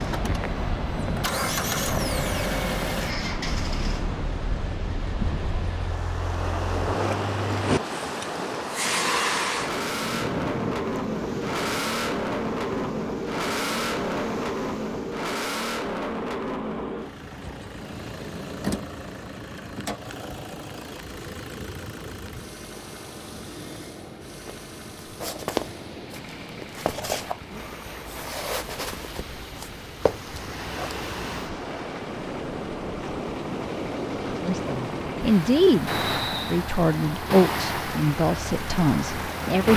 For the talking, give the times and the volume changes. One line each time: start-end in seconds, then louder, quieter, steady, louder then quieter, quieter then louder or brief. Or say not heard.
34.4-39.7 quieter.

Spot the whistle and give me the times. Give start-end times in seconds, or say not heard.
35.9-36.6.